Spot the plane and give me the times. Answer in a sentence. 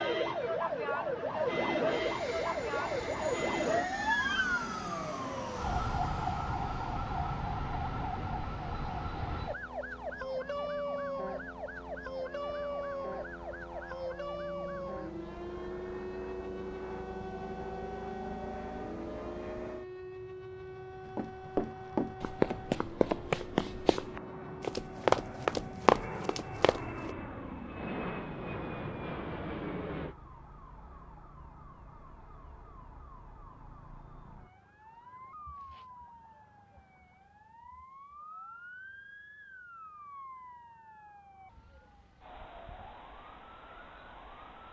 You can hear the plane from 1.9 to 30.1 s.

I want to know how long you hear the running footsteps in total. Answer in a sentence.
You can hear the running footsteps for 6 seconds altogether.